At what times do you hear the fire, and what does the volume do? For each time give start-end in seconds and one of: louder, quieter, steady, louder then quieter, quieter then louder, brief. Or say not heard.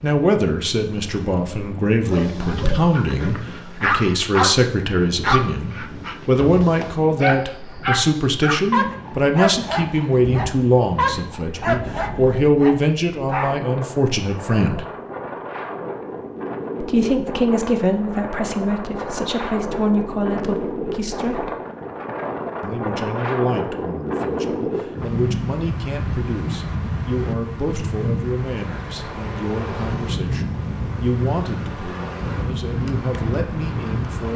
not heard.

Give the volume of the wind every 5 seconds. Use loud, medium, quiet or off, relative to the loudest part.
medium, medium, medium, loud, loud, loud, loud.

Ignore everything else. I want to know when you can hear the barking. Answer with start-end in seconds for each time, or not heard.
2.1-13.6.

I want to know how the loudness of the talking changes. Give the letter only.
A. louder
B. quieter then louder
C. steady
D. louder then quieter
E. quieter
E.